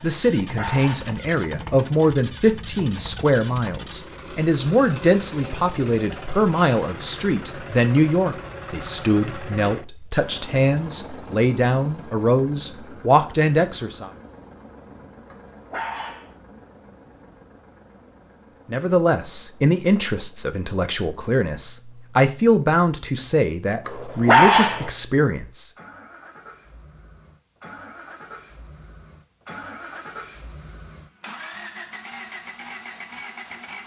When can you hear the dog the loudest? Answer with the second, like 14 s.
24 s.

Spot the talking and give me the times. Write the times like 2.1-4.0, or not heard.
0.0-14.1, 18.6-25.7.